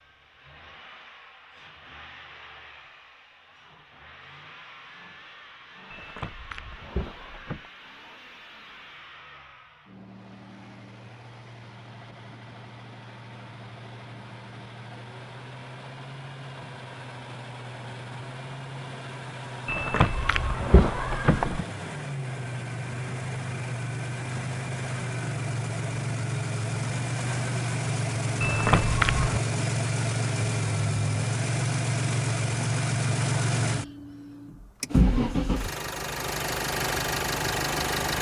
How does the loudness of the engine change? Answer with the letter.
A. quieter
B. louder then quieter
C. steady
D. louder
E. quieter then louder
D.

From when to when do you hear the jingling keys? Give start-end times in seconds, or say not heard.
5.9-7.7, 19.6-21.6, 28.4-29.4.